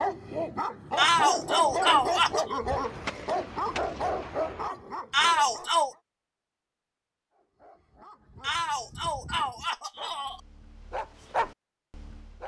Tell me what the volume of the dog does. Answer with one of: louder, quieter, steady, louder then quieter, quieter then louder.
quieter then louder.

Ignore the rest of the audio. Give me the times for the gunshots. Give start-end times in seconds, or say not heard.
2.6-4.7.